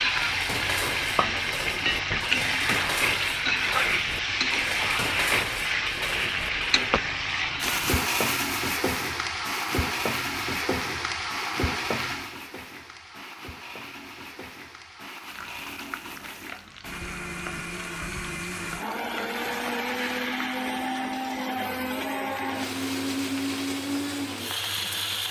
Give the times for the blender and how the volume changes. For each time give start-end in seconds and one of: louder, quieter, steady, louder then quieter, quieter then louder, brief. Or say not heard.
7.5-25.2 quieter then louder.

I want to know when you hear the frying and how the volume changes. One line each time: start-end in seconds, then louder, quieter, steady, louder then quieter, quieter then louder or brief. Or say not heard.
0.0-25.2 quieter.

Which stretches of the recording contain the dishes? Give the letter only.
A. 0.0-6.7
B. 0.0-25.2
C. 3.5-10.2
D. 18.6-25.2
A.